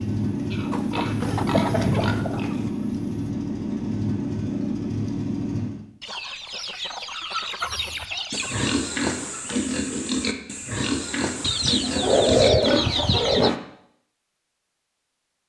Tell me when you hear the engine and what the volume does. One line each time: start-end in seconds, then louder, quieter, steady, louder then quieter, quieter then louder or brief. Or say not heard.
0.0-5.8 steady.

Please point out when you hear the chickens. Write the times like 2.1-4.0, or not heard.
0.7-2.7, 6.0-8.7, 11.4-13.5.